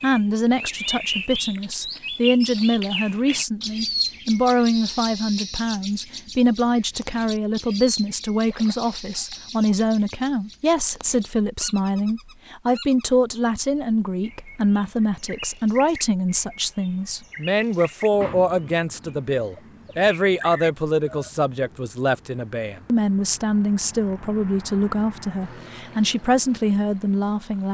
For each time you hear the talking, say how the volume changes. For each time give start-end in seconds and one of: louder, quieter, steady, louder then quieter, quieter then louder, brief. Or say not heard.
0.0-27.6 steady.